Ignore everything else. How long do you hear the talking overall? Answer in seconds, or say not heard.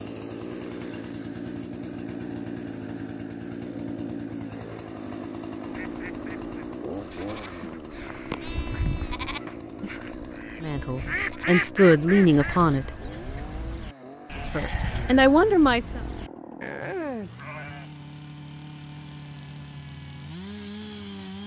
4 s.